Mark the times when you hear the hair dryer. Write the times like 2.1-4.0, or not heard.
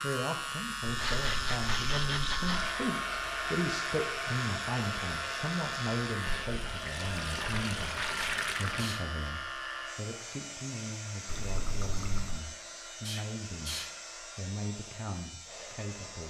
2.5-16.2.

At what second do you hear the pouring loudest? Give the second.
8 s.